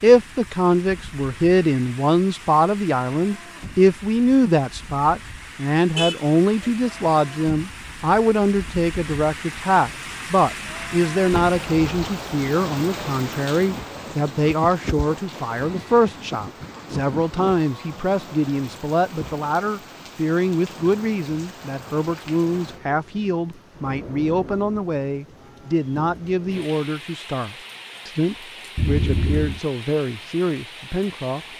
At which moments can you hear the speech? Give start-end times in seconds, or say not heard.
0.0-31.4.